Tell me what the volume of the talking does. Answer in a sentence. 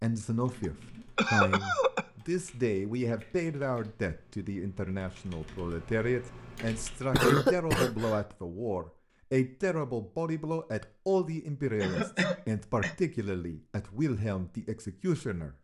The volume of the talking stays about the same.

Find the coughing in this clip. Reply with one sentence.
The coughing can be heard from 0.6 to 2.0 s, from 7.1 to 8.2 s and from 11.8 to 12.9 s.